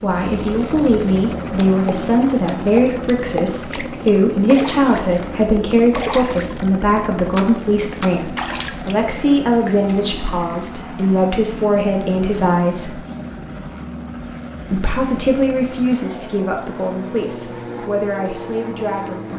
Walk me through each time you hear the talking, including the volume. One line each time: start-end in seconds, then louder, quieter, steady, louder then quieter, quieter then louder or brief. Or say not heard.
0.0-13.0 steady
14.7-19.3 quieter.